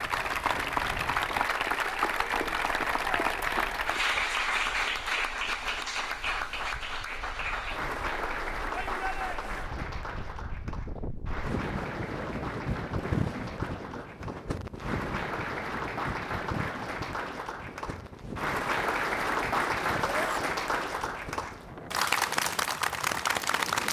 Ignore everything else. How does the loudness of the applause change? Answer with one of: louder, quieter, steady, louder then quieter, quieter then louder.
quieter then louder.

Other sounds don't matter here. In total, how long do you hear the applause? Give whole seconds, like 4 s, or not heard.
24 s.